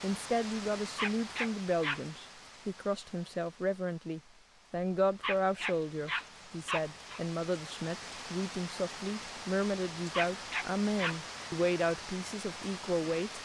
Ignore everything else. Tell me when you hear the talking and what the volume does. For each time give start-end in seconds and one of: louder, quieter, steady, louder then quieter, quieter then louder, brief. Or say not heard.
0.0-13.3 steady.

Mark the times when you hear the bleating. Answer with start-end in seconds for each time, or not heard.
not heard.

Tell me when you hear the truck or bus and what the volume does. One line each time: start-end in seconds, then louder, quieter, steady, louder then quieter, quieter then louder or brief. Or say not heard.
not heard.